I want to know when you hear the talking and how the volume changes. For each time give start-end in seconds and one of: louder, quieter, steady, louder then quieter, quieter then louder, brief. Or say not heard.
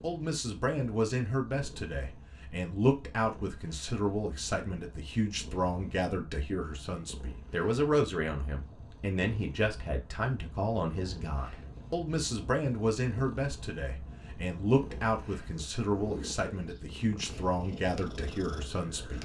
0.0-19.2 steady.